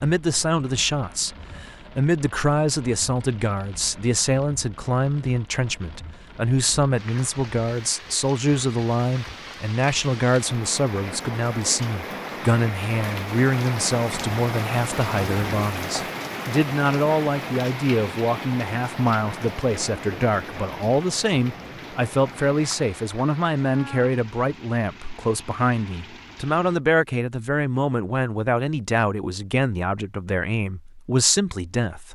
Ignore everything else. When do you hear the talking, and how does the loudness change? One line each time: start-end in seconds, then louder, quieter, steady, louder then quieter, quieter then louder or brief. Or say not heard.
0.0-32.1 steady.